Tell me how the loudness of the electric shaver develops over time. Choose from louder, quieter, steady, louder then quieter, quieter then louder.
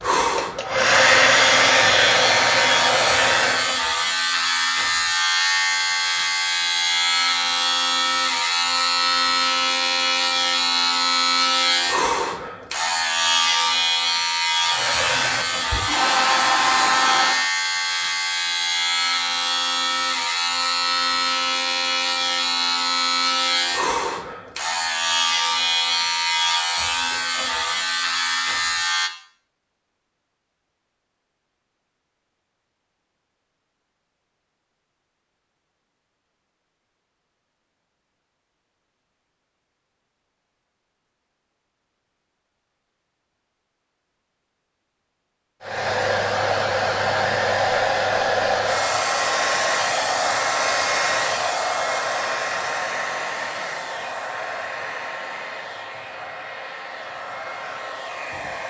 steady.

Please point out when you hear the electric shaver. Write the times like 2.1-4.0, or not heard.
0.0-29.1.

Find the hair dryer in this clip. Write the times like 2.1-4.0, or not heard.
0.0-3.8, 14.7-17.5, 45.6-58.6.